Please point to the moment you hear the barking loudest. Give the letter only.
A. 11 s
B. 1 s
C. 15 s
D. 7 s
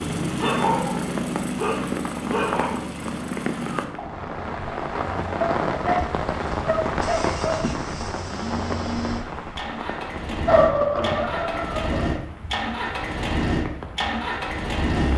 A.